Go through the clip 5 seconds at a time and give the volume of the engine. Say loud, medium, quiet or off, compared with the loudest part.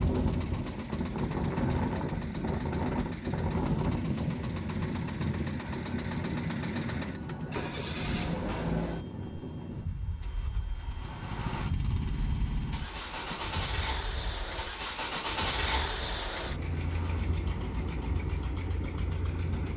medium, loud, loud, loud.